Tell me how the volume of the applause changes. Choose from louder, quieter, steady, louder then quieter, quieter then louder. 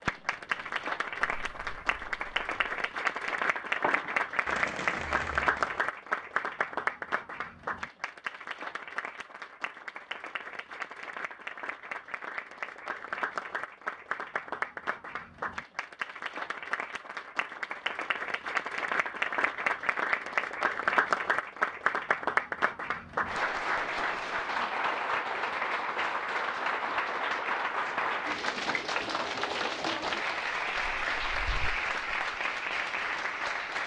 quieter then louder.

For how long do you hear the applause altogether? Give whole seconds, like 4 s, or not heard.
34 s.